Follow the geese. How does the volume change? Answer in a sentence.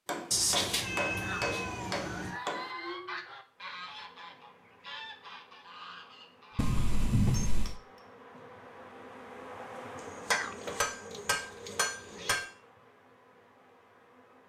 The loudness of the geese goes down.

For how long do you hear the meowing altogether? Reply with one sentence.
The meowing can be heard for 5 seconds in total.